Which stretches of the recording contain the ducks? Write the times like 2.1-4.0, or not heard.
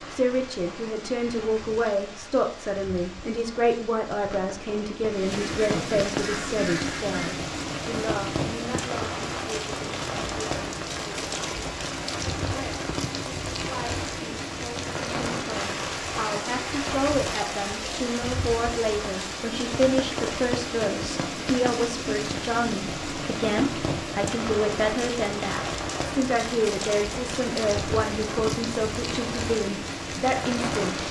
5.5-7.3.